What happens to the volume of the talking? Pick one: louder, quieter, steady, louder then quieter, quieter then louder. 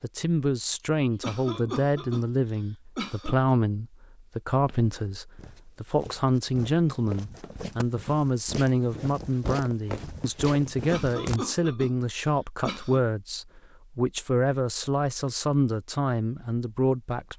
steady.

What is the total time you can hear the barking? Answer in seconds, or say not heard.
not heard.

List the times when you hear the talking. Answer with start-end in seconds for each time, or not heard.
0.0-17.3.